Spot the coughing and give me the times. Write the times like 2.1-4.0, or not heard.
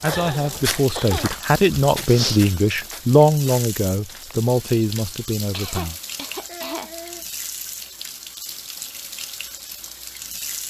0.1-1.2, 5.5-7.2.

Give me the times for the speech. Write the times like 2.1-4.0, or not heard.
0.0-6.0.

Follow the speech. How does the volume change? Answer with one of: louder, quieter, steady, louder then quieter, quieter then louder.
louder then quieter.